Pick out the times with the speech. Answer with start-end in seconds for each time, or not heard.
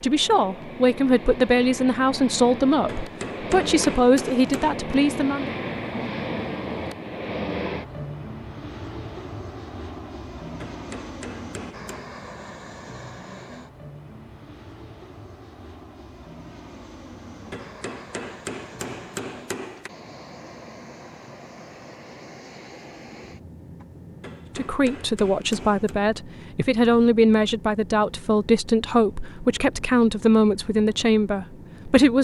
0.0-5.5, 24.6-32.1.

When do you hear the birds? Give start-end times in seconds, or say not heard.
not heard.